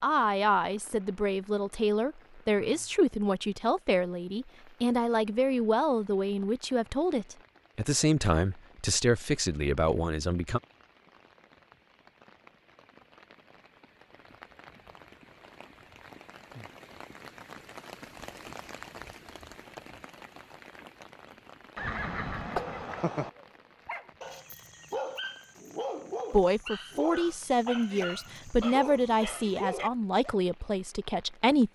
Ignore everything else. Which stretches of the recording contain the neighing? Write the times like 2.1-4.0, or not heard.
21.8-23.3.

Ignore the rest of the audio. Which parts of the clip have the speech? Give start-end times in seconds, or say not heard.
0.0-10.6, 26.3-31.7.